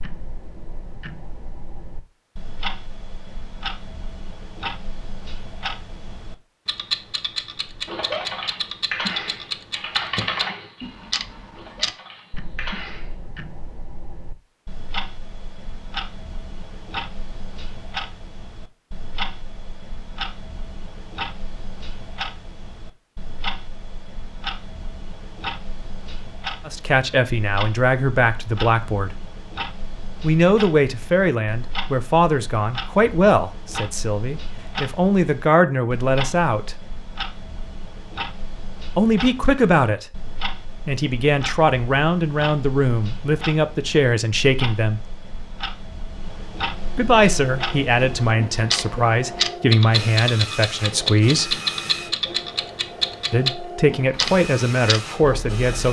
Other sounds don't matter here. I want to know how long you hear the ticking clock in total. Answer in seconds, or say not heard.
56 s.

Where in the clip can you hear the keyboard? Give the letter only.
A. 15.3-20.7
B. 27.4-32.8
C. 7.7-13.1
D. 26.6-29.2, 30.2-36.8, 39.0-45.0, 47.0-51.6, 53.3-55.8
C.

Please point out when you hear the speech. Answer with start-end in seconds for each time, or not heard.
26.6-29.2, 30.2-36.8, 39.0-45.0, 47.0-51.6, 53.3-55.8.